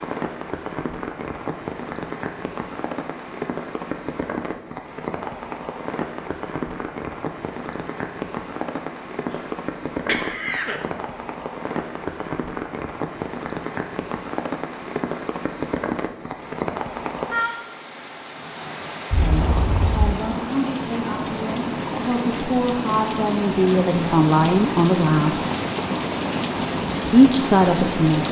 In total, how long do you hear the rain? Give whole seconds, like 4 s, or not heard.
28 s.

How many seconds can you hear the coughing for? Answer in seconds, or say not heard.
2 s.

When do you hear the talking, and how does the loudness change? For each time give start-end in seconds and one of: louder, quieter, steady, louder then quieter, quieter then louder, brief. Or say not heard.
19.1-25.4 louder
27.1-28.2 brief.